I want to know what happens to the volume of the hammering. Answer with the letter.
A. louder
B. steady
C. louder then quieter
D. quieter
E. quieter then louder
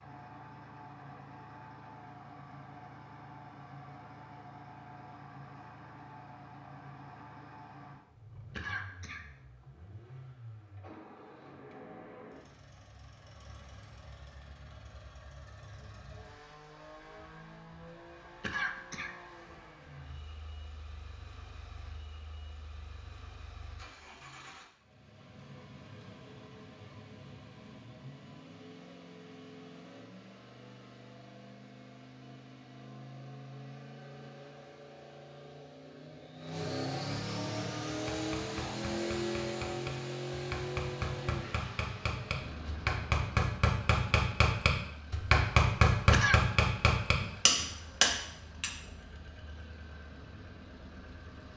A.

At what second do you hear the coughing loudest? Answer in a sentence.
The volume of the coughing peaks at 46 seconds.